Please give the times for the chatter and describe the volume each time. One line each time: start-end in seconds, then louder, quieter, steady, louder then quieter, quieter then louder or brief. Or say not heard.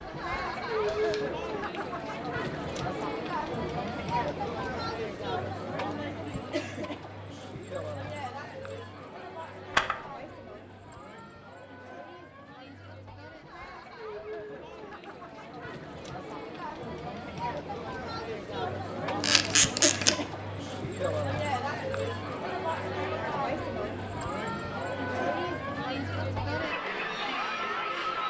0.0-28.2 quieter then louder.